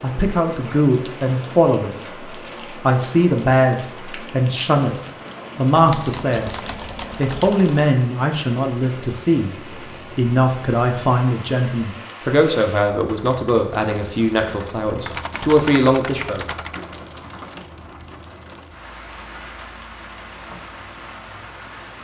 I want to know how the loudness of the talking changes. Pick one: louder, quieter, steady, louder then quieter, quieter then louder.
steady.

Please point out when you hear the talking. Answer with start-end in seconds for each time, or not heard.
0.0-6.5, 7.2-16.4.